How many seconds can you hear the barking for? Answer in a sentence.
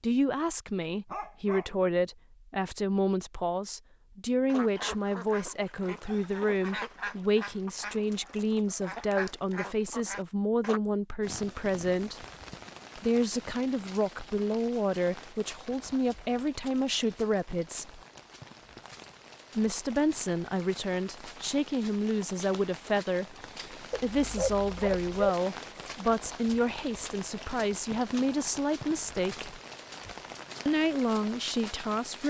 You can hear the barking for 2 seconds altogether.